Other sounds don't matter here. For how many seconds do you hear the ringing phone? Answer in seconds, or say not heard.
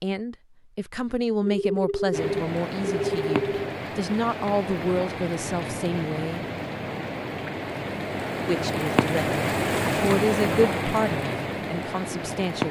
2 s.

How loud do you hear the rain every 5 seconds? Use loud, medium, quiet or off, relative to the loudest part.
medium, loud, loud.